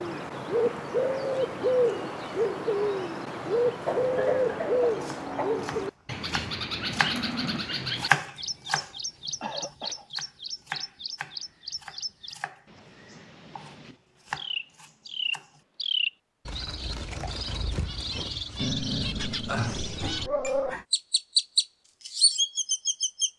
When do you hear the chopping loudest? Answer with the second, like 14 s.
8 s.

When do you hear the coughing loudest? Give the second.
4 s.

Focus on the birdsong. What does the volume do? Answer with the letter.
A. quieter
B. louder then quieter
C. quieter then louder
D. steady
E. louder
C.